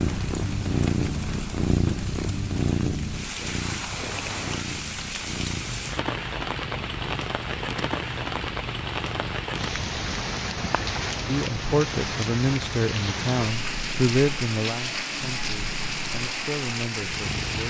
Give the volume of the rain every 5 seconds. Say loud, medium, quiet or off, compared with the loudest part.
medium, loud, loud, loud.